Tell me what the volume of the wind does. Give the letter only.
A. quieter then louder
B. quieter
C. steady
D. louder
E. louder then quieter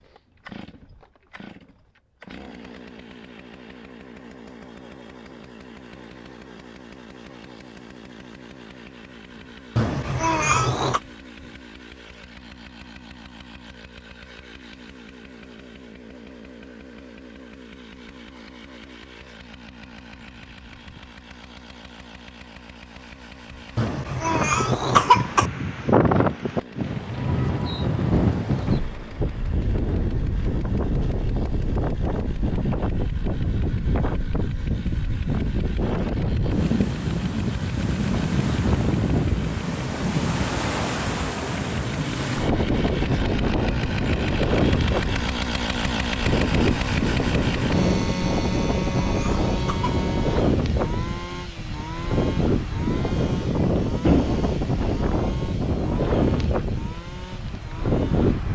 C.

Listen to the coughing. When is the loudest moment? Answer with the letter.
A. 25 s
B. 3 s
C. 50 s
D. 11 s
A.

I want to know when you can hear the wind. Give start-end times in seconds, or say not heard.
24.2-58.5.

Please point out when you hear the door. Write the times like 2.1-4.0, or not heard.
54.0-55.0.